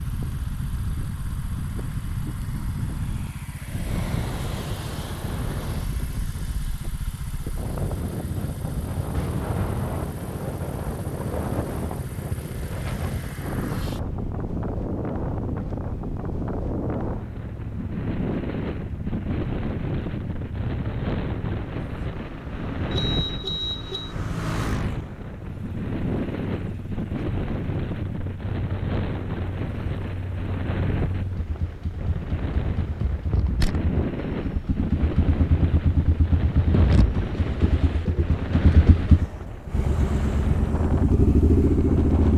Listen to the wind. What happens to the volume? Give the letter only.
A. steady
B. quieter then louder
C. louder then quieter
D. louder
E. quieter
A.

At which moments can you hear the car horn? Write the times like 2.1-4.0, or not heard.
22.9-24.1.